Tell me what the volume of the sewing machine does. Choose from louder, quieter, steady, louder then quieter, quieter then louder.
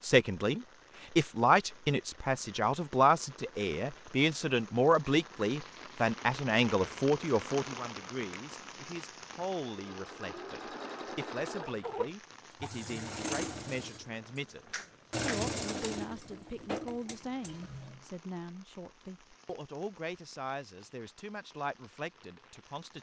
louder then quieter.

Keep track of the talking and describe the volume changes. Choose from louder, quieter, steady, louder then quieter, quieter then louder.
quieter.